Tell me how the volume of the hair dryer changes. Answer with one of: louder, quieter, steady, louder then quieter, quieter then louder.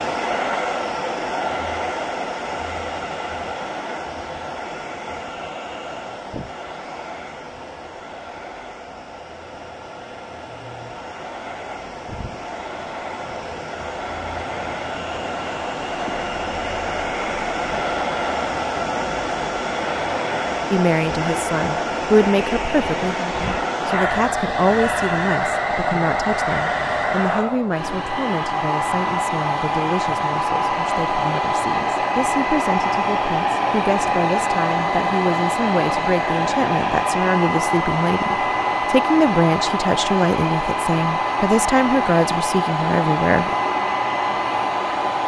louder.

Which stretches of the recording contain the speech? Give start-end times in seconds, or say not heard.
20.7-43.5.